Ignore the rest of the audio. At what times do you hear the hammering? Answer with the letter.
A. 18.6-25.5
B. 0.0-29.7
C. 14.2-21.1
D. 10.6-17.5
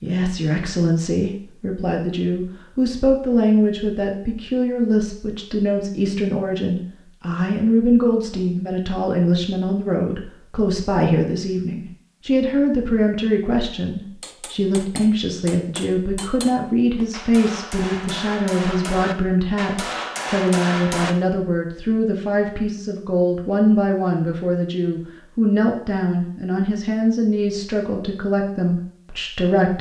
C.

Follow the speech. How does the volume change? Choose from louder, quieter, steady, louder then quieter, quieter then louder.
steady.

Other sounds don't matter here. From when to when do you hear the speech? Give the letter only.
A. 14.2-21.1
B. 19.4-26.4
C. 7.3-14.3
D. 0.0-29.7
D.